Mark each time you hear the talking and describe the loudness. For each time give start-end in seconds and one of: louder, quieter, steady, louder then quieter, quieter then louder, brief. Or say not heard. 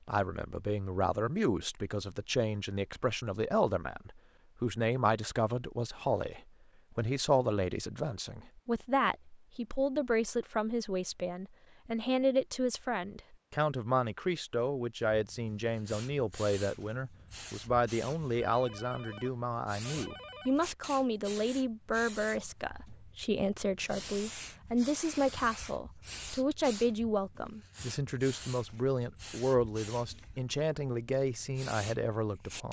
0.1-32.6 steady.